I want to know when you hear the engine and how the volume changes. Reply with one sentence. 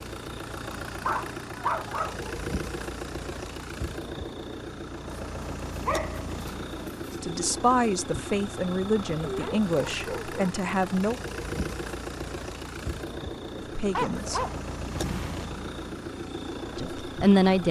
You can hear the engine from 0.0 to 17.6 s, at a steady volume.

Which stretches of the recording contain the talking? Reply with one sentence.
The talking can be heard from 7.2 to 11.2 s, from 13.6 to 14.4 s and from 16.8 to 17.6 s.